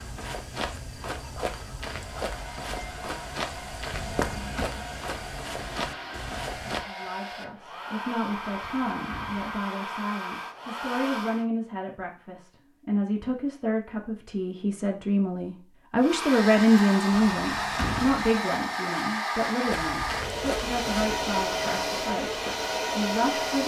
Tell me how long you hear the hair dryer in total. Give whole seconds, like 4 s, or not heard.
17 s.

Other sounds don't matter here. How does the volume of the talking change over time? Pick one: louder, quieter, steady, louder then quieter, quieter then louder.
louder then quieter.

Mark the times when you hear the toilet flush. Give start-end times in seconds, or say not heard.
5.6-6.5.